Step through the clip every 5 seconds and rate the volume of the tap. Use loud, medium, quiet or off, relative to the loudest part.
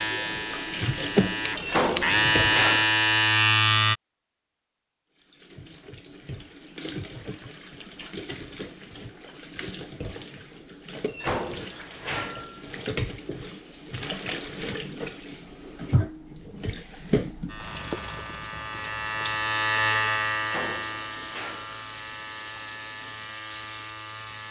loud, medium, medium, loud, medium.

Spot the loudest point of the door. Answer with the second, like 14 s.
2 s.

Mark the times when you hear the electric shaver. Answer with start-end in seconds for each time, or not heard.
0.0-4.0, 17.4-24.4.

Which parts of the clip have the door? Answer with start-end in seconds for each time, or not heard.
1.6-2.9, 11.1-12.7, 20.4-21.8.